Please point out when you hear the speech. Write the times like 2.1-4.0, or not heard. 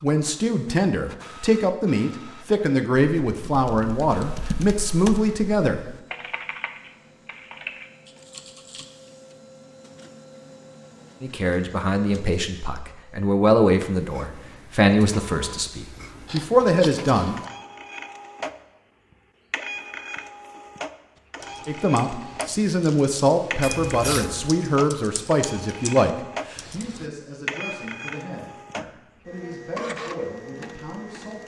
0.0-5.8, 11.2-17.4, 21.6-31.4.